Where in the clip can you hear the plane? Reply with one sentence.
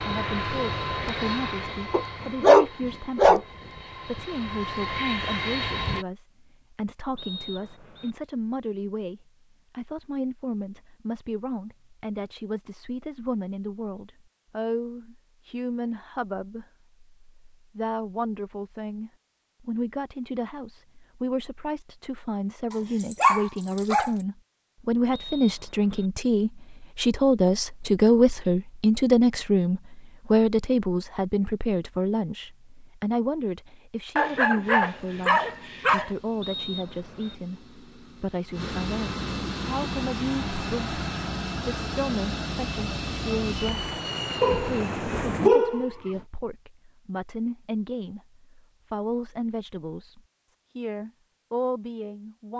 You can hear the plane from 0.0 to 6.0 s and from 34.8 to 45.5 s.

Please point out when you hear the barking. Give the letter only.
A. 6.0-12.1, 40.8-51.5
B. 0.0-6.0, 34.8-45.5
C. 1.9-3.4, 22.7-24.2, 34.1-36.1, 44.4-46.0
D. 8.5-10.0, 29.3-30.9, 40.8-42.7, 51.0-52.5
C.